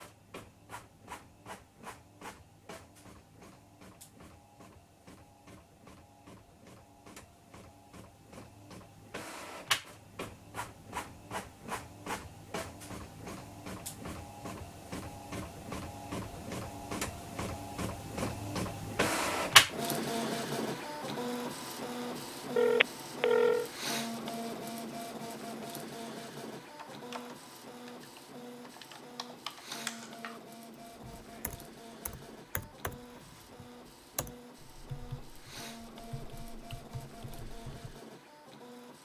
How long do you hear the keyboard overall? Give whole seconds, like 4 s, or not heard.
11 s.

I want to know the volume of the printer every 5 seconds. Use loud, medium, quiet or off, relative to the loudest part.
quiet, quiet, quiet, loud, medium, quiet, quiet, quiet.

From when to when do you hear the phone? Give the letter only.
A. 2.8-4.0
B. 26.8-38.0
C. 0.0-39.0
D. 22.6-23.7
D.